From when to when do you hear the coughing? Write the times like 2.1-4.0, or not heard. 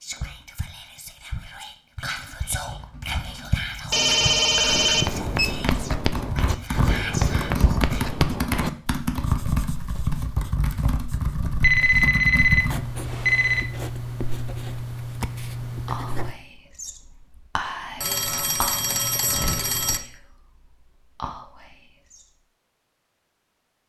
not heard.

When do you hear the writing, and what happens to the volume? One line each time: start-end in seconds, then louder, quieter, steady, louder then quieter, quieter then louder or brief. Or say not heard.
4.7-16.4 quieter then louder.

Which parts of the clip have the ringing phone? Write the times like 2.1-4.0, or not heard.
3.9-5.5, 11.6-13.7, 18.0-20.0.